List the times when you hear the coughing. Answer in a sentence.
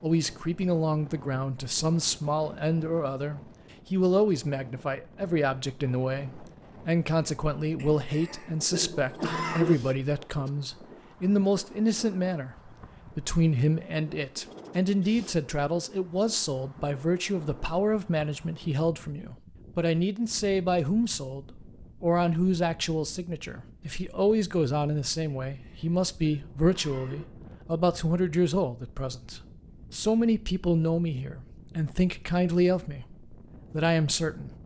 You can hear the coughing from 7.8 to 9.8 s and from 25.4 to 27.2 s.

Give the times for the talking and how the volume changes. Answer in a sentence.
You can hear the talking from 0.0 to 34.5 s, at a steady volume.